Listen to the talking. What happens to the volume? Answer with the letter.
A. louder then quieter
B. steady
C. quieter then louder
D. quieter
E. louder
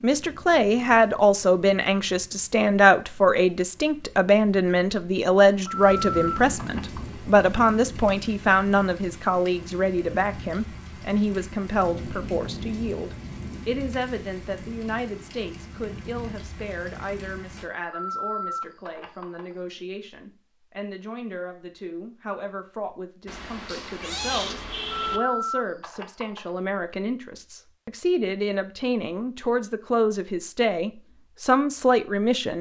C.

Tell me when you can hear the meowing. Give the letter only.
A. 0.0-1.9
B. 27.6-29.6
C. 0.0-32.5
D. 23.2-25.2
D.